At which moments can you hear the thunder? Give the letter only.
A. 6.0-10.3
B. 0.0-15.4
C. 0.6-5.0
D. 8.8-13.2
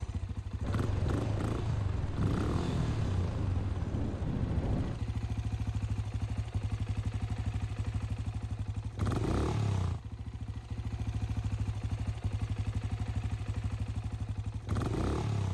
C.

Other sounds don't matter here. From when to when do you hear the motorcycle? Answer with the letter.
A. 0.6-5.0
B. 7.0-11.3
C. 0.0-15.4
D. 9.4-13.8
C.